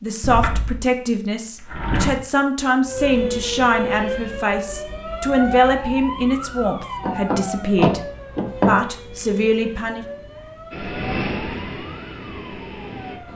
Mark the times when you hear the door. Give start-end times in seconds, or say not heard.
0.2-2.1, 7.0-8.8.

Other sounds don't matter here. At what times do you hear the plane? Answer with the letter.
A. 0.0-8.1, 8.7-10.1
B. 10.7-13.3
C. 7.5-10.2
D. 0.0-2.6
B.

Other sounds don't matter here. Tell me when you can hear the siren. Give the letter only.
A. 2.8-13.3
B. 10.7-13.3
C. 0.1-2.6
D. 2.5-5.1
A.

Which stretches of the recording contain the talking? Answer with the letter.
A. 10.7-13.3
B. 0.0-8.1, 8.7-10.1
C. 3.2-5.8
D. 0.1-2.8
B.